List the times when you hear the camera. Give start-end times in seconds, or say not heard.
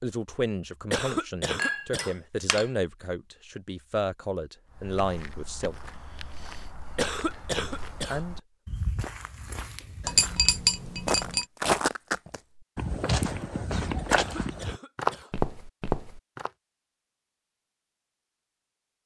not heard.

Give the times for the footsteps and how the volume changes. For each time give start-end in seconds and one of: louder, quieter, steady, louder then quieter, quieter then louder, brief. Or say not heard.
4.7-16.5 louder.